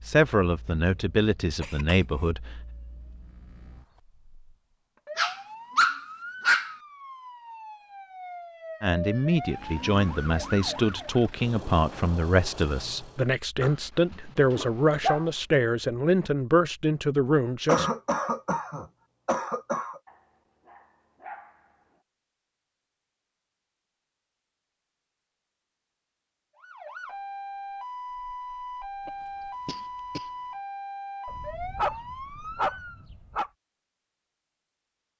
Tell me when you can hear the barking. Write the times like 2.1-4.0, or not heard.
5.2-6.7, 13.6-15.2, 20.1-21.6, 31.2-33.5.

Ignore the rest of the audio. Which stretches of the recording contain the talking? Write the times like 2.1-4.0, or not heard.
0.1-2.6, 8.8-17.9.